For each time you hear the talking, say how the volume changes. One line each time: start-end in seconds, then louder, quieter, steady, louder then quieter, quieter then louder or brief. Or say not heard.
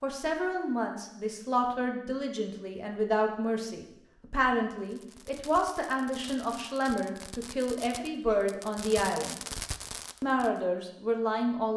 0.0-9.4 steady
10.2-11.7 brief.